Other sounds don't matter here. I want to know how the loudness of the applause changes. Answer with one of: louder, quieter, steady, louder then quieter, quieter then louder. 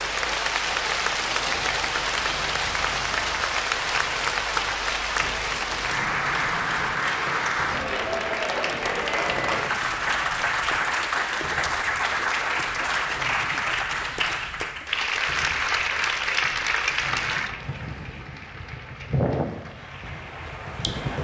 quieter.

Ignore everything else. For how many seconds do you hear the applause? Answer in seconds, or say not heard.
21 s.